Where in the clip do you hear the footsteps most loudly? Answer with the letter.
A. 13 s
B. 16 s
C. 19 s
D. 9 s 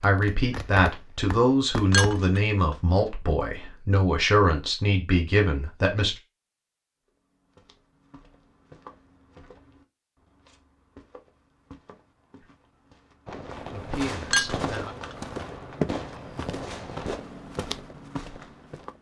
B.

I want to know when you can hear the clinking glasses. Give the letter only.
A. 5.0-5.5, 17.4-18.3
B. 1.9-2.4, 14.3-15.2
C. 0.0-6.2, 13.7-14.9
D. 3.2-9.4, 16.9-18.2
B.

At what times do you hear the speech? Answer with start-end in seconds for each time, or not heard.
0.0-6.2, 13.7-14.9.